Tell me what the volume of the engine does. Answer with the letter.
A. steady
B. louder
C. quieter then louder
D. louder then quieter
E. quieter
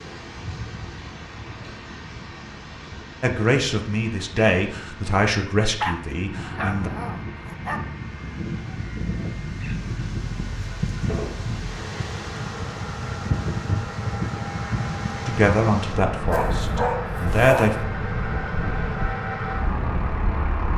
B.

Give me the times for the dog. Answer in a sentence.
The dog can be heard from 5.8 to 7.8 s and from 16.3 to 17.8 s.